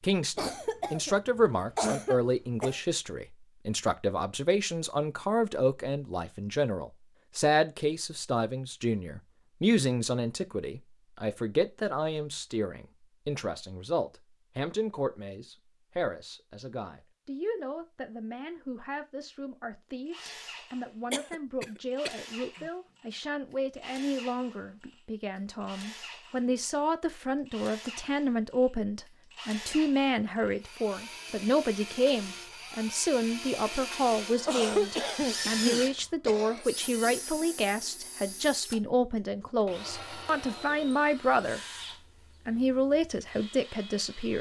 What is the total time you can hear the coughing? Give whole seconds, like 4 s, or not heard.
6 s.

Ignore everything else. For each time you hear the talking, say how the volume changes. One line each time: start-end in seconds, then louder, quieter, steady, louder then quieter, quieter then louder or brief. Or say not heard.
0.0-41.6 quieter then louder
42.5-44.3 brief.